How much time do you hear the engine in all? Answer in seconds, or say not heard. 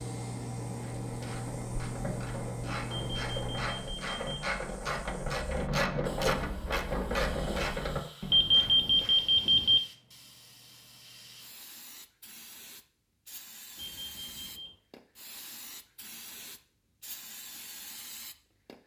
4 s.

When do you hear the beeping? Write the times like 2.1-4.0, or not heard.
2.9-4.4, 8.3-9.8, 13.8-14.7.